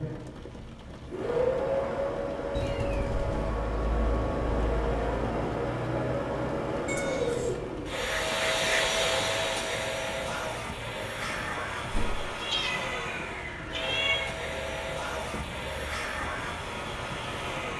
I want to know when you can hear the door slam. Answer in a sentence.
You can hear the door slam from 11.9 to 12.3 s.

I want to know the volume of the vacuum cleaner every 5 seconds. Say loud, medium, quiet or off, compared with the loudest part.
loud, loud, medium, medium.